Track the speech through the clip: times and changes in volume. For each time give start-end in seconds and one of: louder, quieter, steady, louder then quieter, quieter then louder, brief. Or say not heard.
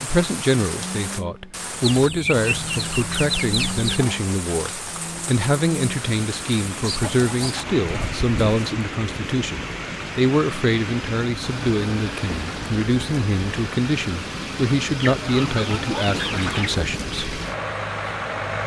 0.0-17.4 steady.